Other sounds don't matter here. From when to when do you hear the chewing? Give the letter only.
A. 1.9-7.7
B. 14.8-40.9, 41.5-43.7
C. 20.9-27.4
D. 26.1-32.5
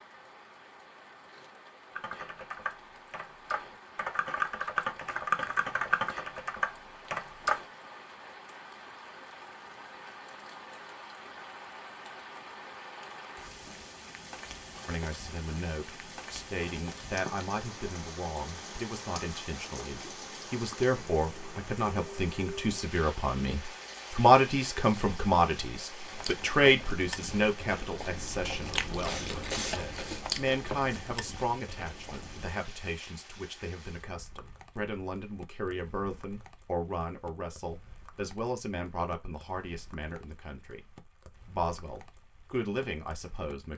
D.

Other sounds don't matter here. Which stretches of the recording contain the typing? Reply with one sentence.
You can hear the typing from 1.9 to 7.7 s.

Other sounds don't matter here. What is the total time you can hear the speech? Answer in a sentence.
The speech can be heard for 28 seconds in total.